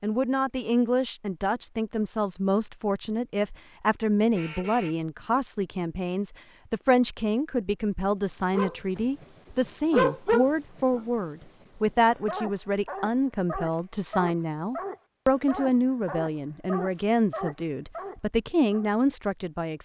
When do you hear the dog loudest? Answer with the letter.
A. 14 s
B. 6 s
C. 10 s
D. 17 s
C.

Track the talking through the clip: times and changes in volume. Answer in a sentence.
The talking can be heard from 0.0 to 19.8 s, at a steady volume.